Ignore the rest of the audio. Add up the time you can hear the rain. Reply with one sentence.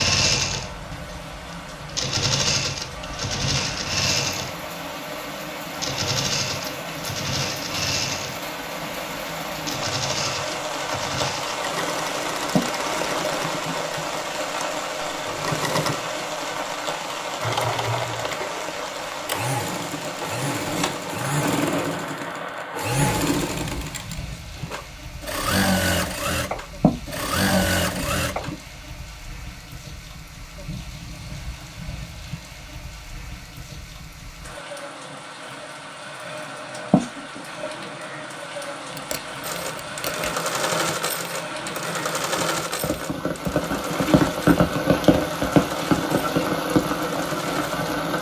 You can hear the rain for 48 seconds altogether.